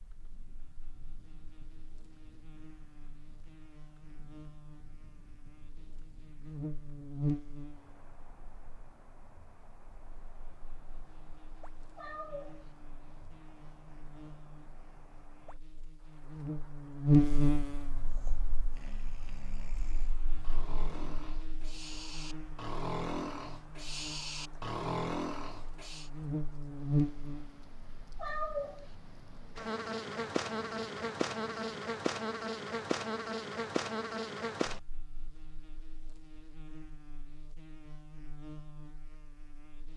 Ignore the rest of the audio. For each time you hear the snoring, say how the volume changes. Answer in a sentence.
You can hear the snoring from 18.1 to 26.1 s, getting louder.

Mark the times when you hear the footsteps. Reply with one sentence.
You can't hear the footsteps here.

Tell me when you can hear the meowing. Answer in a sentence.
The meowing can be heard from 11.9 to 12.7 s and from 28.1 to 28.9 s.